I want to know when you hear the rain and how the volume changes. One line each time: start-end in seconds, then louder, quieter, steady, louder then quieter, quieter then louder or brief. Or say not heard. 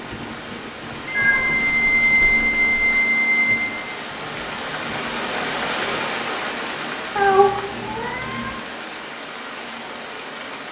0.0-10.6 louder then quieter.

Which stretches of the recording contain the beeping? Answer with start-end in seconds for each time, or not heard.
1.1-3.8, 6.6-9.2.